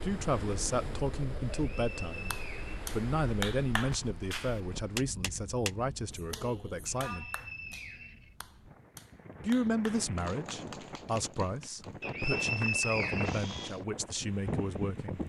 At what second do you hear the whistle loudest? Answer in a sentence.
The volume of the whistle peaks at 13 seconds.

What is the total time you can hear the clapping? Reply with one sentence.
The clapping can be heard for 11 seconds in total.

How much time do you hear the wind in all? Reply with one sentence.
The wind can be heard for 15 seconds in total.